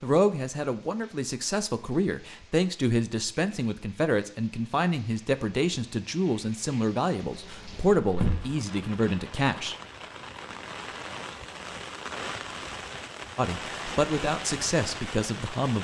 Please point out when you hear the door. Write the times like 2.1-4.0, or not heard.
7.2-8.4.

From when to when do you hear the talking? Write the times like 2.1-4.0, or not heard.
0.0-9.8, 13.3-15.8.